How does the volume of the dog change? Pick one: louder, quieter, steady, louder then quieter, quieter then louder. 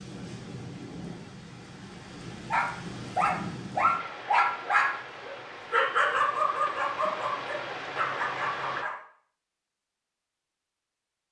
quieter.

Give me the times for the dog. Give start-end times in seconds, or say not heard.
2.5-8.9.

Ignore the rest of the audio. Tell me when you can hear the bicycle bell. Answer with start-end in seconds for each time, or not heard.
not heard.